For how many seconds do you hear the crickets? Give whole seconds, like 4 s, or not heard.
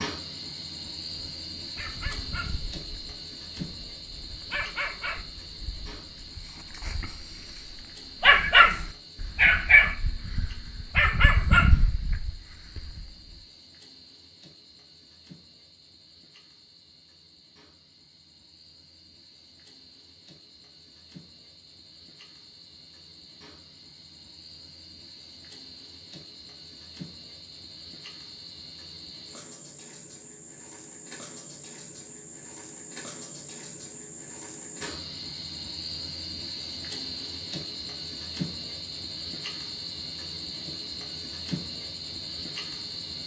43 s.